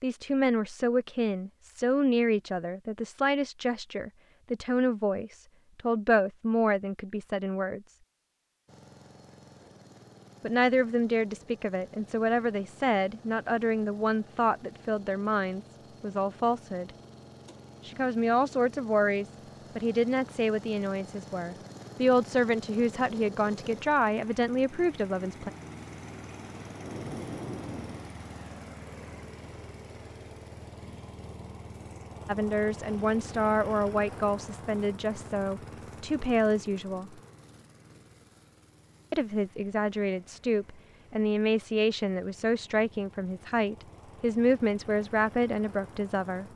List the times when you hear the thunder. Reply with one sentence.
You can hear the thunder from 26.6 to 28.1 s.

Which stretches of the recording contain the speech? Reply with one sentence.
The speech can be heard from 0.0 to 8.0 s, from 10.4 to 16.9 s, from 17.9 to 25.5 s, from 32.2 to 37.1 s and from 39.1 to 46.4 s.